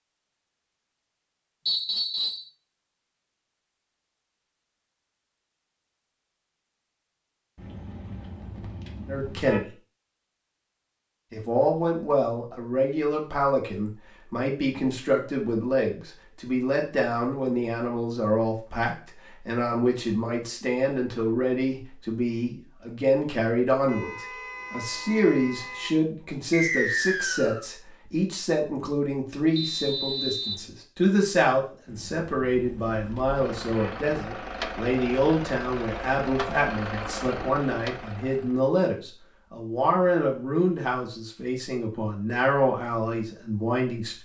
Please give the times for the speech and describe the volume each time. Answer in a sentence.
The speech can be heard briefly from 9.1 to 9.7 s; and from 11.3 to 44.1 s, at a steady volume.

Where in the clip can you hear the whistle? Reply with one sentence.
The whistle can be heard from 1.6 to 2.5 s, from 26.5 to 27.6 s and from 29.6 to 30.6 s.